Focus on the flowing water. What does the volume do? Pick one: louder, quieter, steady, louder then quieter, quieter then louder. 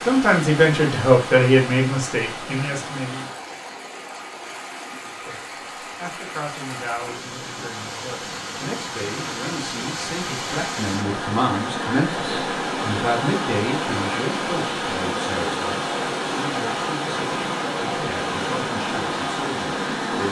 louder.